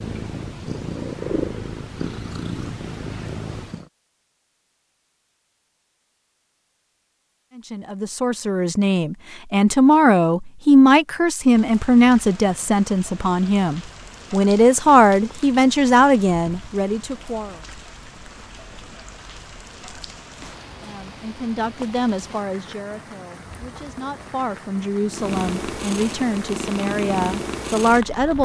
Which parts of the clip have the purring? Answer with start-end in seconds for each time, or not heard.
0.0-3.9, 25.1-28.4.